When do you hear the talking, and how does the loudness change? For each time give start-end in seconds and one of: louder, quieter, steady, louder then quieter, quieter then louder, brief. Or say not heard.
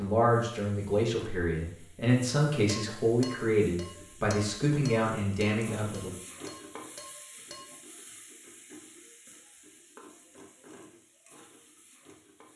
0.0-6.2 steady.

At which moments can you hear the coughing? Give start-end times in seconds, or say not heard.
not heard.